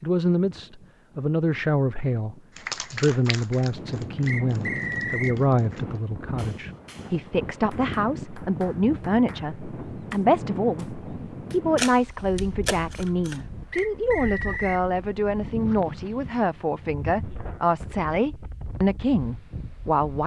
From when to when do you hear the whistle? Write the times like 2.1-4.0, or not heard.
4.2-5.4, 13.7-14.8.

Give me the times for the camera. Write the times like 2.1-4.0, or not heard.
11.8-13.8.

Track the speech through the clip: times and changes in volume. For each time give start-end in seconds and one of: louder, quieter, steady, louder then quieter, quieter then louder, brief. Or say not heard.
0.0-20.2 steady.